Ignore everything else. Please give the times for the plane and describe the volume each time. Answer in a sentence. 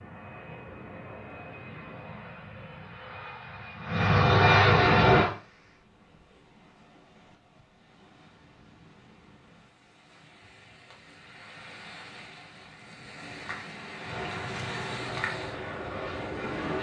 The plane can be heard from 0.0 to 5.3 s, getting louder; and briefly from 14.0 to 16.7 s.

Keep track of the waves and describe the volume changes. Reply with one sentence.
The volume of the waves goes up.